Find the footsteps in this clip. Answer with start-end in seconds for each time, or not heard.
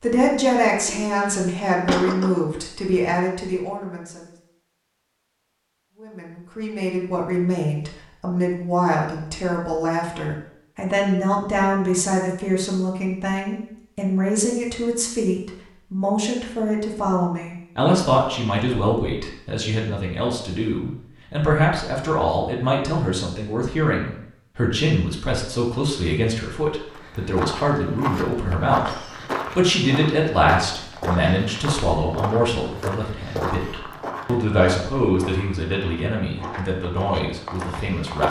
26.9-38.2.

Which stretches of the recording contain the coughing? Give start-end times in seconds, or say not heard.
0.7-2.3.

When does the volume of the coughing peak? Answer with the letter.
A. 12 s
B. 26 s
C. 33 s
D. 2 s
D.